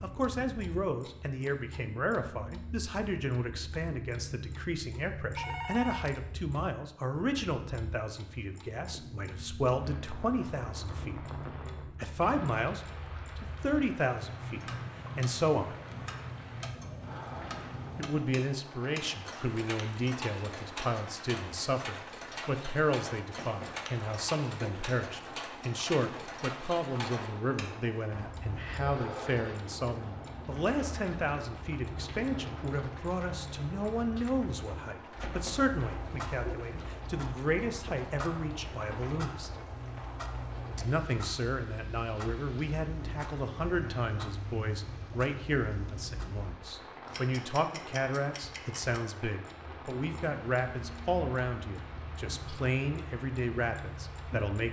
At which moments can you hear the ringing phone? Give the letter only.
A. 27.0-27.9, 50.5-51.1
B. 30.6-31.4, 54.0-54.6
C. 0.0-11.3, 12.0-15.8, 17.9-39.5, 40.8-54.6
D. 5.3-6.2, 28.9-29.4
D.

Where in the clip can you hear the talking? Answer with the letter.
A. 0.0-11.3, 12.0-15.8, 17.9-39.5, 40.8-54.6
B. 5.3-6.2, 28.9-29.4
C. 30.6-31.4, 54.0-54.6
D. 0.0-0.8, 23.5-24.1
A.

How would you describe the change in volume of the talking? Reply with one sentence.
The volume of the talking stays about the same.